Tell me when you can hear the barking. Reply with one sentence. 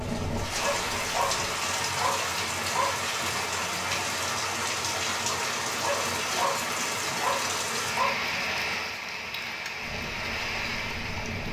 You can hear the barking from 0.6 to 3.0 s and from 5.8 to 8.2 s.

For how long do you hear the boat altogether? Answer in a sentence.
You can hear the boat for 3 seconds altogether.